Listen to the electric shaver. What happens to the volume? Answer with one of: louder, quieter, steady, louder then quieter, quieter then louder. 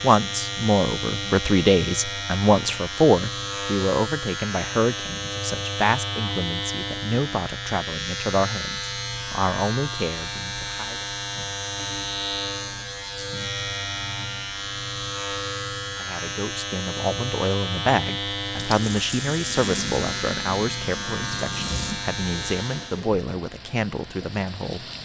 steady.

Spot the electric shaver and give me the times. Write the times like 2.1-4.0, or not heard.
0.0-23.1.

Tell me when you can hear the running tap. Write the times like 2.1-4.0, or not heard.
18.5-24.9.